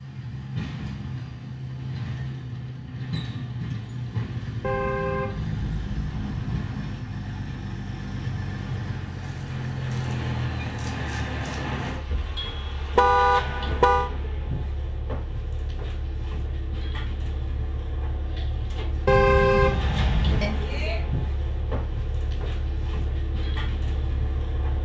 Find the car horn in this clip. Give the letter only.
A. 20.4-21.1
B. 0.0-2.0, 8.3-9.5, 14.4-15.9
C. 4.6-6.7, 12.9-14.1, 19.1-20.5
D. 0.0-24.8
C.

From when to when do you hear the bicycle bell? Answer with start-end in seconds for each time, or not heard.
20.4-21.1.